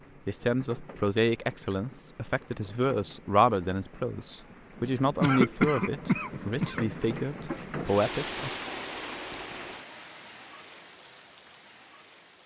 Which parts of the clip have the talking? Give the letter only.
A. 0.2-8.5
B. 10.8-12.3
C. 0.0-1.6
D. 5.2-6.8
A.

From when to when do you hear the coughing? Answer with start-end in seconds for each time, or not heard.
5.2-6.8.